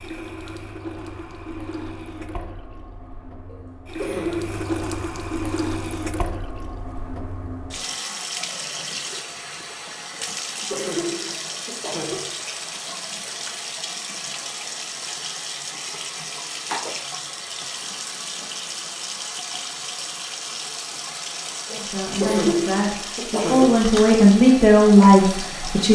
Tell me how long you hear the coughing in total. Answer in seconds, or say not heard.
5 s.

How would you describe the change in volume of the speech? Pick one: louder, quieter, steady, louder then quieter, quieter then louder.
louder.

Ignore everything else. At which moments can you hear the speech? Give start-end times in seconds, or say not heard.
21.7-25.9.